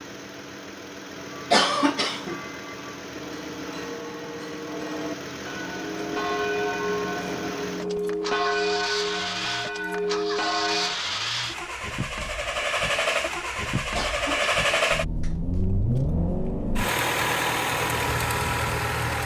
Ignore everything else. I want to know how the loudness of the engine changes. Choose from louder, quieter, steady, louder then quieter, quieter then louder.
louder.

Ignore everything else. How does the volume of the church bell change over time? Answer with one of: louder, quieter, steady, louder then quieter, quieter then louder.
louder.